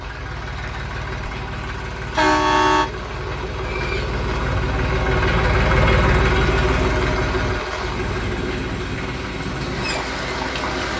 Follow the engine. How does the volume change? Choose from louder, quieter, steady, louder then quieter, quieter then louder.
louder then quieter.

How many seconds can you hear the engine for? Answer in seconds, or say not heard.
11 s.